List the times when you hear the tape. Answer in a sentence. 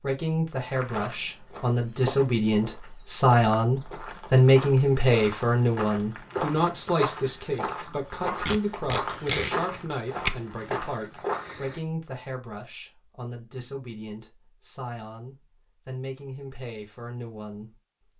You can hear the tape from 8.4 to 10.4 s.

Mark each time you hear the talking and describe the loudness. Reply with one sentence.
The talking can be heard from 0.0 to 18.1 s, getting quieter.